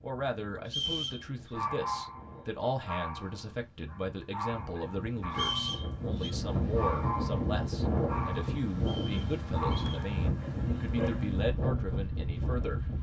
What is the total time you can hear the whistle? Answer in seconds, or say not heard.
3 s.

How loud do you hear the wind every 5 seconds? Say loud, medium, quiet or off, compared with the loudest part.
quiet, loud, loud.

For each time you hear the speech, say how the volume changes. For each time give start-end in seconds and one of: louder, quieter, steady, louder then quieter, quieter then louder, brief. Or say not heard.
0.0-12.8 steady.